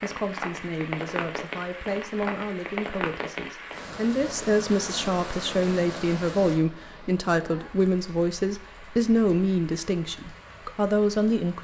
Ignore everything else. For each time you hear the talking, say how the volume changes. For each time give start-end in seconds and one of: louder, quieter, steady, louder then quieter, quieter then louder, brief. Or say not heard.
0.0-11.5 louder.